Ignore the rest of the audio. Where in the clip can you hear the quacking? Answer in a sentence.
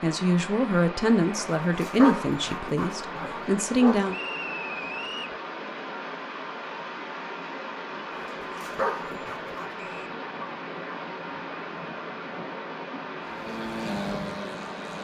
You can't hear the quacking here.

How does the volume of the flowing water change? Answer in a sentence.
The volume of the flowing water stays about the same.